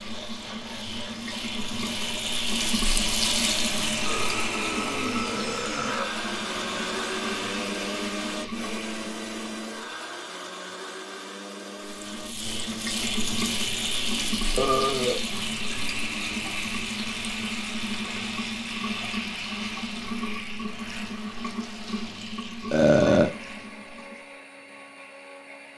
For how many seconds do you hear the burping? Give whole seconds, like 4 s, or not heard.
3 s.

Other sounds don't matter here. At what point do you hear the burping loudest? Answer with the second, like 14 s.
23 s.